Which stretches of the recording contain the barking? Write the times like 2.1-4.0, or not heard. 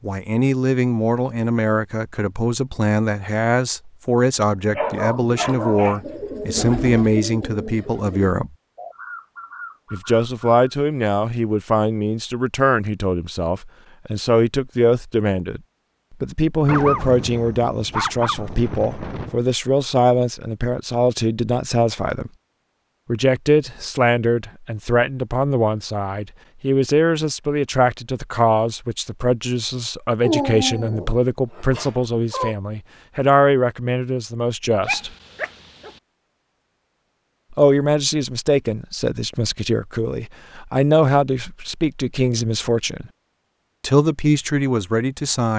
4.5-6.0, 16.6-19.4, 30.2-32.5, 34.9-36.0.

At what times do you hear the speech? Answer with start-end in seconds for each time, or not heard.
0.0-8.5, 9.9-22.3, 23.1-35.1, 37.5-43.0, 43.8-45.5.